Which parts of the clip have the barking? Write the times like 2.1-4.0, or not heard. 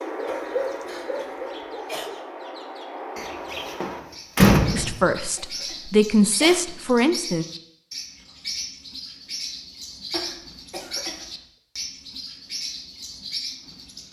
0.0-2.3.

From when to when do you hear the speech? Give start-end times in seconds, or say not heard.
4.7-7.5.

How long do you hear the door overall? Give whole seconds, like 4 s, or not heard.
2 s.